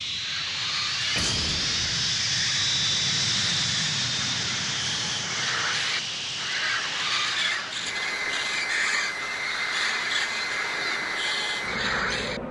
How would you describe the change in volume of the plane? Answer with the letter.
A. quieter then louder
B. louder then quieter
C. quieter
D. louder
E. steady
C.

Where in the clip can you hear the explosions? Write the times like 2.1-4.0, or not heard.
1.1-2.2.